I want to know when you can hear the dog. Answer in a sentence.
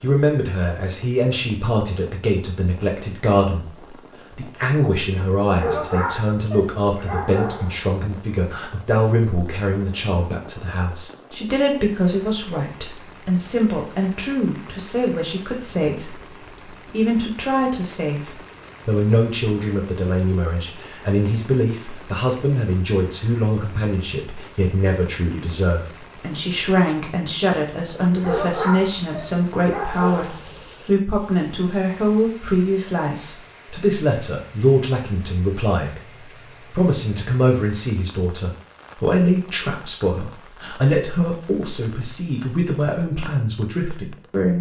You can hear the dog from 5.5 to 8.0 s and from 28.2 to 30.6 s.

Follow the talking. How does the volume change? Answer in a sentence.
The volume of the talking stays about the same.